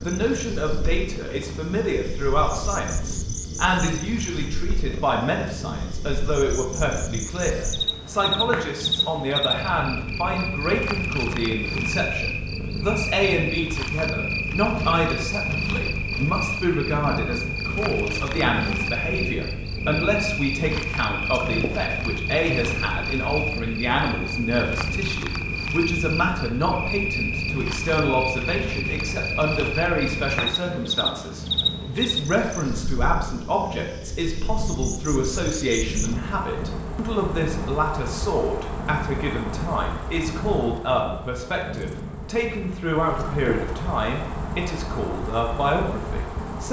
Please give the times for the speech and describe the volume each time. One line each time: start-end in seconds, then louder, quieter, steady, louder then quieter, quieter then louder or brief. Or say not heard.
0.0-46.6 steady.